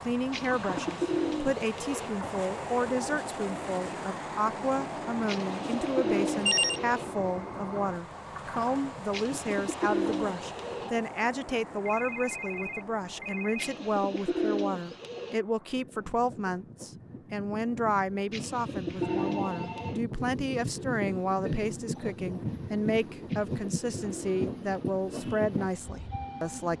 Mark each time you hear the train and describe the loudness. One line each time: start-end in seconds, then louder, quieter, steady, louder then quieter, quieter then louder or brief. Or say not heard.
0.0-26.7 quieter then louder.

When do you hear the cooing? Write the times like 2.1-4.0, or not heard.
0.3-2.1, 5.2-7.0, 9.1-10.9, 13.6-15.3, 18.3-20.0, 23.2-24.9.